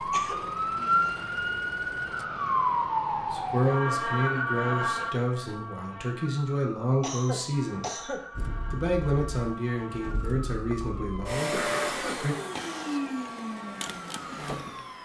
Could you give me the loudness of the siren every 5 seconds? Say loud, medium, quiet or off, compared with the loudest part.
loud, quiet, quiet.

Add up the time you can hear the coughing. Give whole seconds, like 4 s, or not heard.
3 s.